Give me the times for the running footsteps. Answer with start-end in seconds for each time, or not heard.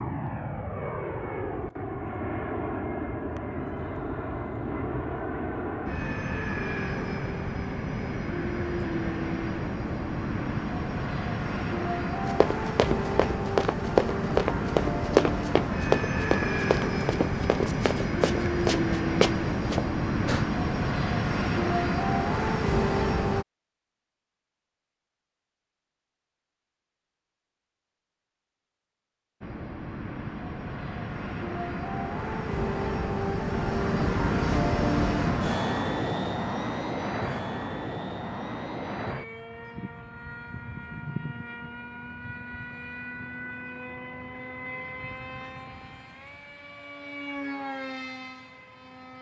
12.2-20.4.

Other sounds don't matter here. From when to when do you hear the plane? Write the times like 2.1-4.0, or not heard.
0.0-23.4, 29.4-49.1.